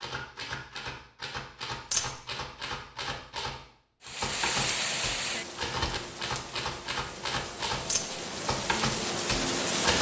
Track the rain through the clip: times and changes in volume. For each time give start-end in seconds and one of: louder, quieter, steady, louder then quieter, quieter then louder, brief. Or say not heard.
4.0-9.9 quieter then louder.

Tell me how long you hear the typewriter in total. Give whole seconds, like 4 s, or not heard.
10 s.